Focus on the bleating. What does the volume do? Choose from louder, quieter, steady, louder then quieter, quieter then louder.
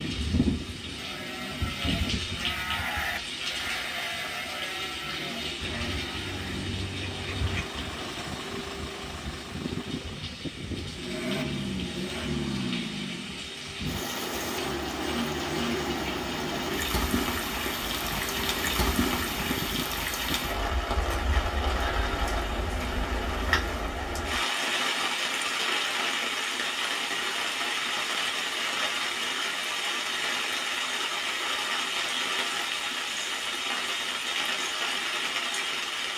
louder then quieter.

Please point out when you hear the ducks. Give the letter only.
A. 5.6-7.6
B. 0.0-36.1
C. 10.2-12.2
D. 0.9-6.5
A.